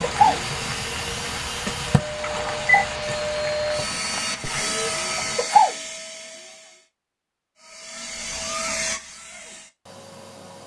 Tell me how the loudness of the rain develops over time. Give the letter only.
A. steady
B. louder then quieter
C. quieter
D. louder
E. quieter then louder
C.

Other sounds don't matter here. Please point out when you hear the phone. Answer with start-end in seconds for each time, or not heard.
1.8-2.9.